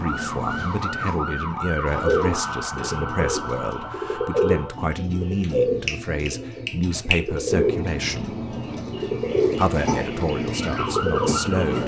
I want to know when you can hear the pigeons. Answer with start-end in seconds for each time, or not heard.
1.9-11.8.